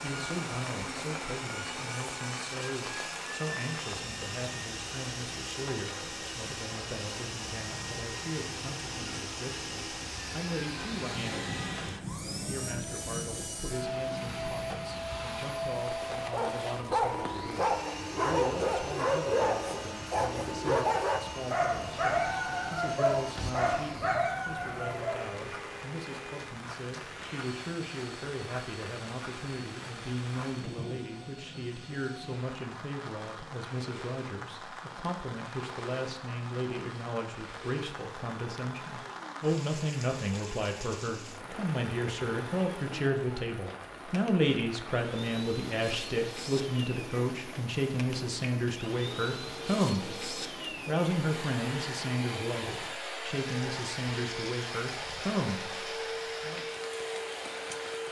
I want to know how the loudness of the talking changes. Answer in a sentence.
The volume of the talking goes up.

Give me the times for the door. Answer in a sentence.
You can't hear the door here.